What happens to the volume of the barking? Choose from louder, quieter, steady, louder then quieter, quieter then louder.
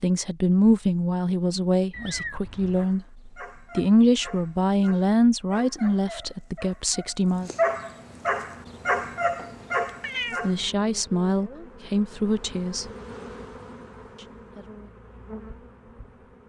louder.